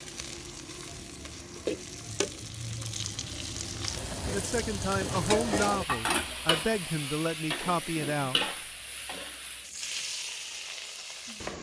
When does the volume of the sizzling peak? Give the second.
6 s.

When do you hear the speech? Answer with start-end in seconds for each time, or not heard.
4.2-8.4.